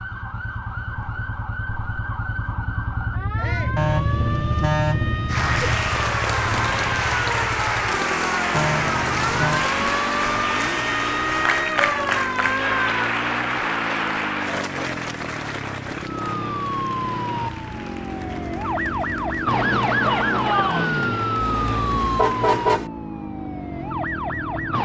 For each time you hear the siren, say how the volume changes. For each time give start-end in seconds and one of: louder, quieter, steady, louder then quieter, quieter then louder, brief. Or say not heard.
0.0-12.9 louder
16.0-24.8 louder then quieter.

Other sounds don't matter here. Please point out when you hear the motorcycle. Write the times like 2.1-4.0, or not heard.
0.0-24.8.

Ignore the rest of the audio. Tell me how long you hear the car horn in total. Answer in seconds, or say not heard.
5 s.